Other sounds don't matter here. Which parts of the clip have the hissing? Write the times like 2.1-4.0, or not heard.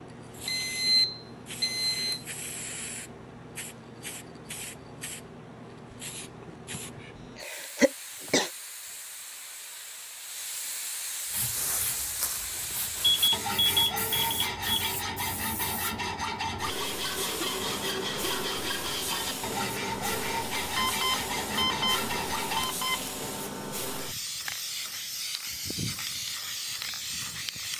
0.0-27.7.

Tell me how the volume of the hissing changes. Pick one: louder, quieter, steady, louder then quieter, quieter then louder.
louder.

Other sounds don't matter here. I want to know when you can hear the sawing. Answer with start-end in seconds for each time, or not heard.
11.3-22.7.